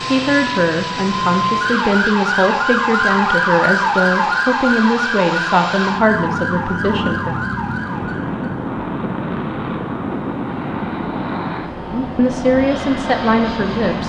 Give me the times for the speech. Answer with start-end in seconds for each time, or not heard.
0.1-7.5, 11.9-14.0.